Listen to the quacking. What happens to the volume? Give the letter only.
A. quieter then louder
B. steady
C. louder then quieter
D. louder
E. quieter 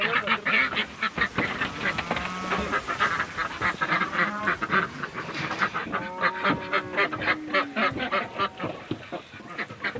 B.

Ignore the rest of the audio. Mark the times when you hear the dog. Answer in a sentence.
The dog can't be heard in this clip.